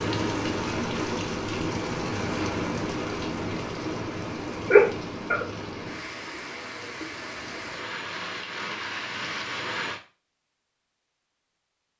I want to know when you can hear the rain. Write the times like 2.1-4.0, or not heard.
0.0-10.0.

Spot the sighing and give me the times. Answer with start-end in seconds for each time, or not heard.
4.7-5.5.